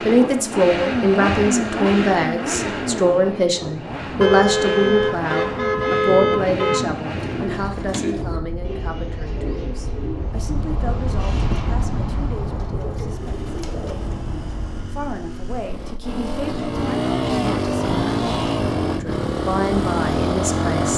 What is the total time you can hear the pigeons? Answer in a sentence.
The pigeons can be heard for 7 seconds in total.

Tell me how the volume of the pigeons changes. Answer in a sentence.
The loudness of the pigeons goes down.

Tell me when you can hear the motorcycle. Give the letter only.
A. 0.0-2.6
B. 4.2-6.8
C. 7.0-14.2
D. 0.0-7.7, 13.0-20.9
D.